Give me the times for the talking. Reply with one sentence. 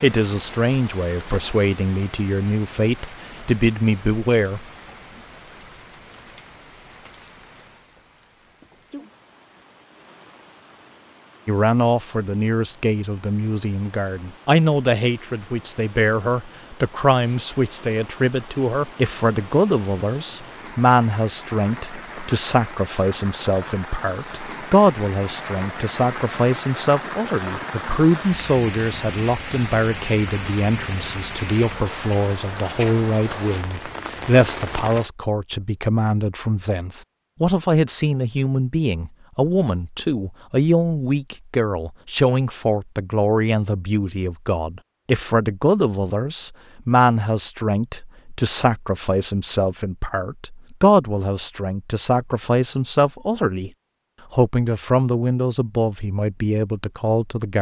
You can hear the talking from 0.0 to 4.6 s, from 11.4 to 53.7 s and from 54.3 to 57.5 s.